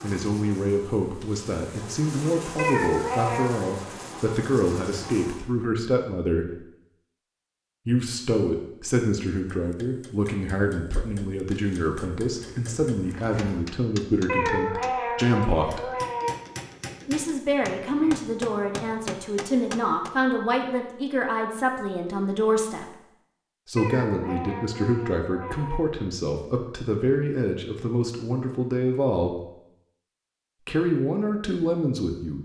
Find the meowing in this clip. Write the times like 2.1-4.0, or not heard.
2.5-3.7, 14.2-16.3, 23.8-25.8.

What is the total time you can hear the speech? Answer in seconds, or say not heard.
28 s.